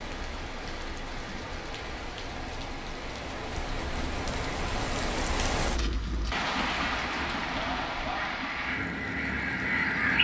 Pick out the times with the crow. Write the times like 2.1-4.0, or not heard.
8.1-10.2.